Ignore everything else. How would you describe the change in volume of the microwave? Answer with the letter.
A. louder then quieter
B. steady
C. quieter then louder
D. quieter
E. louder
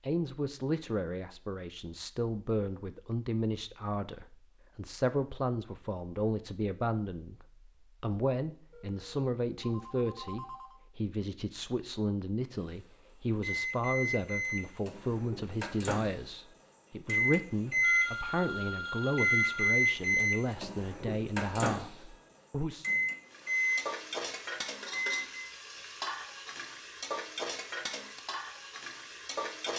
A.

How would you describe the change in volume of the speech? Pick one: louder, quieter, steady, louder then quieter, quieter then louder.
steady.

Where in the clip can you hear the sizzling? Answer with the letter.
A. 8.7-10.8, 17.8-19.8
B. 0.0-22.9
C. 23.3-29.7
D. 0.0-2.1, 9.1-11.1
C.